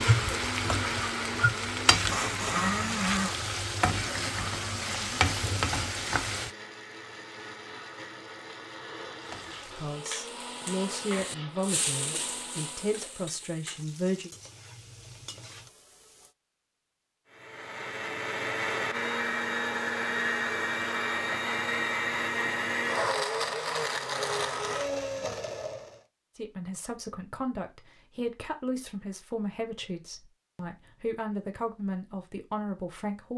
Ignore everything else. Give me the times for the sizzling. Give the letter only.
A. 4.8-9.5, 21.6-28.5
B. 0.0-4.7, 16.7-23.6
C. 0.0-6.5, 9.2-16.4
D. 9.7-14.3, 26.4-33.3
C.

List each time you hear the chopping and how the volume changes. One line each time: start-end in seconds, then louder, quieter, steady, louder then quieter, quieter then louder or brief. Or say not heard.
not heard.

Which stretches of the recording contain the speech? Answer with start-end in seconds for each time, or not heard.
9.7-14.3, 26.4-33.3.